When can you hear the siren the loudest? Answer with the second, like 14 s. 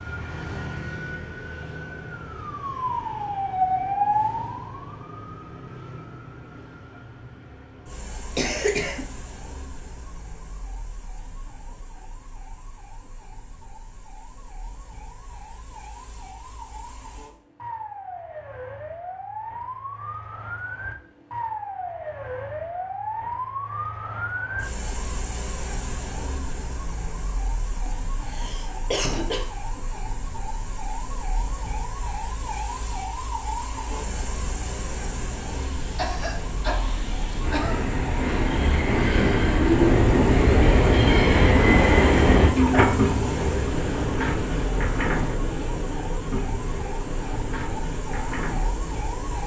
4 s.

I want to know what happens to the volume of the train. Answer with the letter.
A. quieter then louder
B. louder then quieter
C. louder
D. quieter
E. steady
B.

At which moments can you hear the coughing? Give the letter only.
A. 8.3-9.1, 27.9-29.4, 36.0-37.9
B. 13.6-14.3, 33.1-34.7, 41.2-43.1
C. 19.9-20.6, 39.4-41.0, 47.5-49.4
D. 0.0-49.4
A.